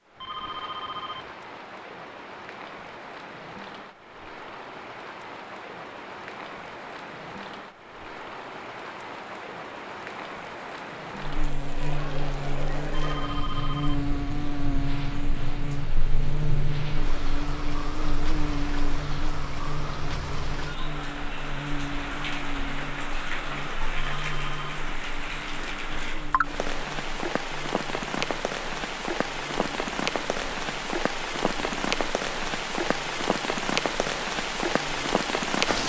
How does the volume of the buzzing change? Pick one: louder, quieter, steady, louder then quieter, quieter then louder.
quieter.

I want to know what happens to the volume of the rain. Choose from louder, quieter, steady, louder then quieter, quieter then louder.
louder.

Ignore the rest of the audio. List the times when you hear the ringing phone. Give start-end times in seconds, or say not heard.
0.1-1.4, 12.9-14.1, 23.9-24.6.